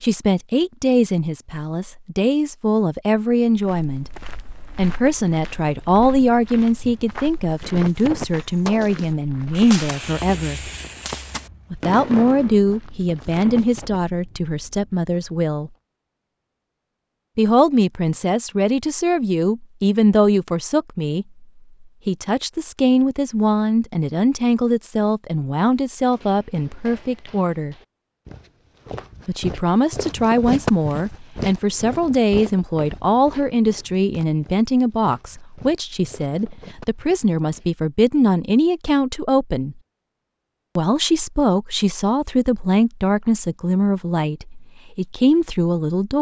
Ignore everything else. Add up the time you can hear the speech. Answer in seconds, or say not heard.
40 s.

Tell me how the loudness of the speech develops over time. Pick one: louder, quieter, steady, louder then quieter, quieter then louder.
steady.